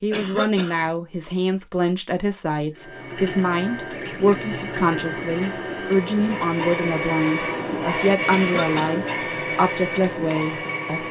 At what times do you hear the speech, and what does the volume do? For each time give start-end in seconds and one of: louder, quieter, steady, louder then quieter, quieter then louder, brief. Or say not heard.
0.0-11.0 steady.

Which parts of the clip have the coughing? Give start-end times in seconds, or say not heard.
0.1-0.9, 8.3-9.1.